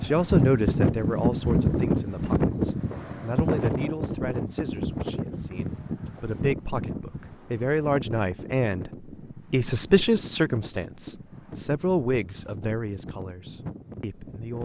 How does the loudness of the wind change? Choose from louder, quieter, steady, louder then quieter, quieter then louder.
quieter.